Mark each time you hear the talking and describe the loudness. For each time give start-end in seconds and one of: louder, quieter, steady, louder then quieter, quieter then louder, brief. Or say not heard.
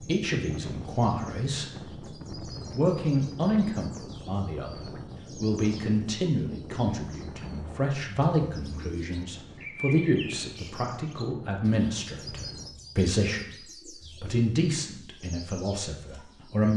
0.0-2.0 brief
2.7-16.7 steady.